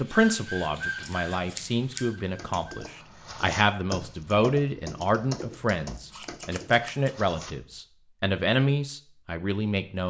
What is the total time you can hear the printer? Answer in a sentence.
You can hear the printer for 3 seconds altogether.